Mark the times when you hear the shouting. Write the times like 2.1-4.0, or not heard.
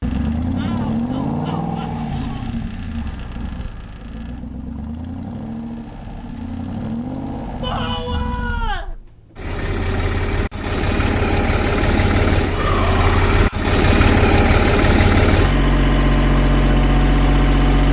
0.6-2.5, 7.6-8.9, 12.4-13.6.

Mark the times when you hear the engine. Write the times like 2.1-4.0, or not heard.
0.0-17.8.